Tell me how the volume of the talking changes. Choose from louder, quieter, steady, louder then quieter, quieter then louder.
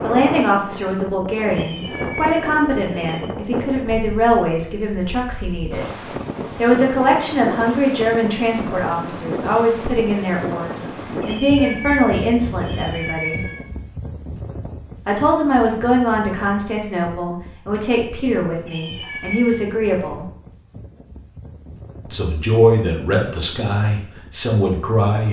steady.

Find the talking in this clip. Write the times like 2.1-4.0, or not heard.
0.0-5.9, 6.5-13.4, 15.1-20.2, 22.1-25.2.